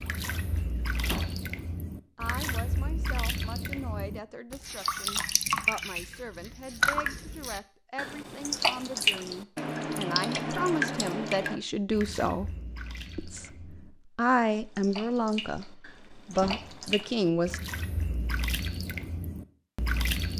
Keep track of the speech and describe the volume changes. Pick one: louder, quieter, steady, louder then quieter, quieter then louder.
louder.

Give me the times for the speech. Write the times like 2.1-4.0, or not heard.
2.1-12.6, 13.2-17.6.